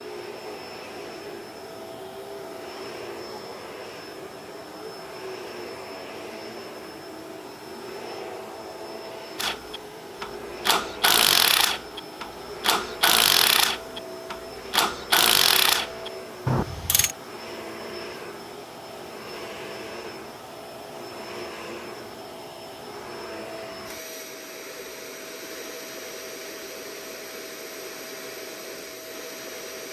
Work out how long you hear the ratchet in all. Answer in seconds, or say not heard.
8 s.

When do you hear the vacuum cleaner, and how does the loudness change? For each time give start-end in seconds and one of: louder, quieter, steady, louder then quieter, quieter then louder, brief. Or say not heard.
0.0-29.8 steady.